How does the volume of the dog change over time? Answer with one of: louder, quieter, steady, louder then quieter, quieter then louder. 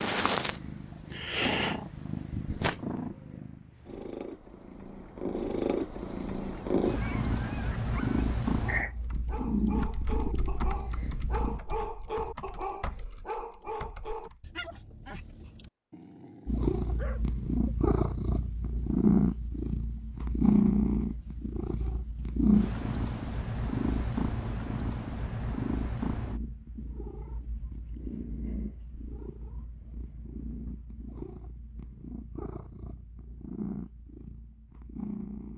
louder then quieter.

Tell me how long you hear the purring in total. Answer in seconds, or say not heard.
31 s.